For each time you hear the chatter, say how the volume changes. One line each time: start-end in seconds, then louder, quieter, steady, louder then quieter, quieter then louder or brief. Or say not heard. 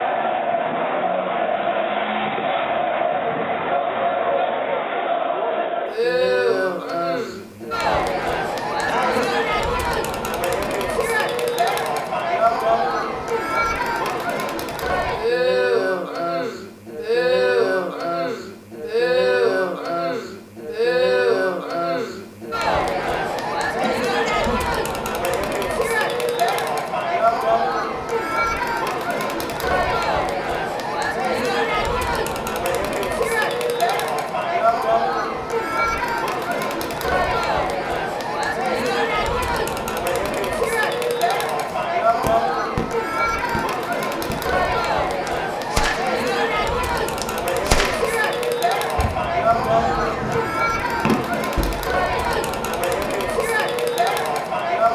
0.0-54.9 steady.